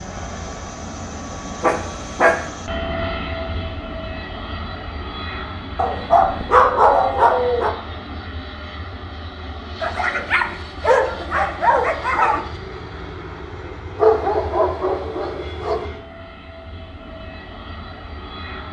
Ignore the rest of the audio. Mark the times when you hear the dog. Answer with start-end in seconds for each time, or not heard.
1.6-2.5, 5.8-7.8, 9.8-12.4, 13.9-15.8.